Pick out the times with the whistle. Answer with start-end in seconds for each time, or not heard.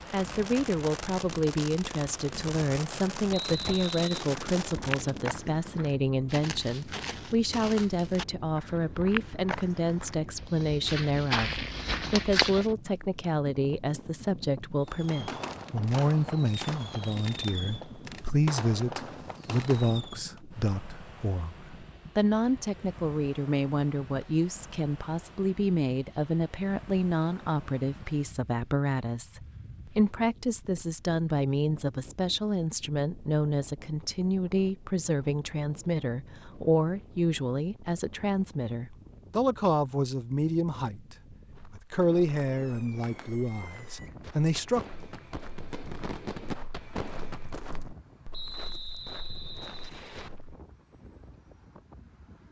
3.3-4.2, 48.3-50.3.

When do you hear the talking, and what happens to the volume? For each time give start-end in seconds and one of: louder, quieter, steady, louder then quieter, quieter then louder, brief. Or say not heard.
0.1-44.9 steady.